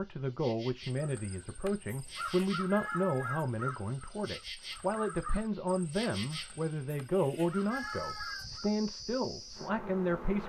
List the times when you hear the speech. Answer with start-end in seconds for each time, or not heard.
0.0-10.4.